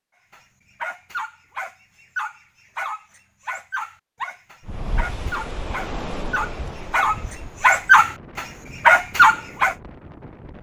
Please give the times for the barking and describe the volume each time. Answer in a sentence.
The barking can be heard from 0.3 to 9.8 s, getting louder.